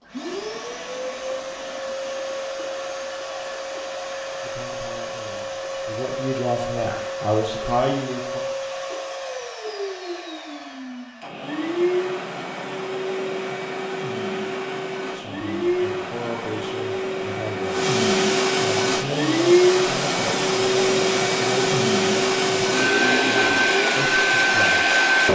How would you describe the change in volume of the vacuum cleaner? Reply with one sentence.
The volume of the vacuum cleaner goes up.